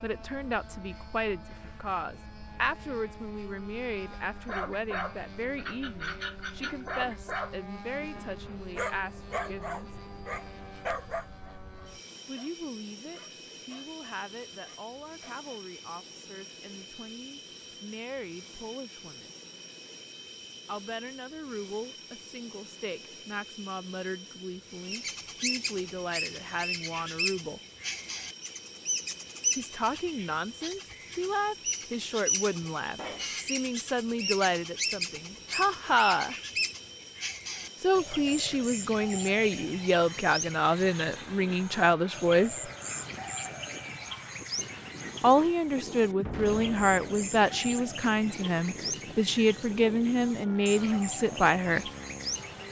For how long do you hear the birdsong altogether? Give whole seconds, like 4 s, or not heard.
28 s.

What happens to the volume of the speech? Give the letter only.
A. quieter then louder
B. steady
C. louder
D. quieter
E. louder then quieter
A.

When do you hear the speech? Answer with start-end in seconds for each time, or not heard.
0.0-9.9, 12.2-19.4, 20.6-27.6, 29.6-36.4, 37.8-42.7, 45.2-51.9.